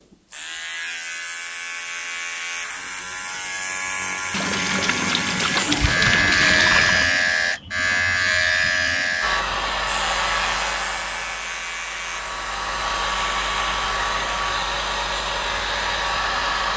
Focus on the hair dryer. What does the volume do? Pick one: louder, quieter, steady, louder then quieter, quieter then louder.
quieter then louder.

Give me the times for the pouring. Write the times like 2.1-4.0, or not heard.
4.3-7.1.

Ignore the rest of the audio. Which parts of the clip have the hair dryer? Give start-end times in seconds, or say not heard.
9.2-16.7.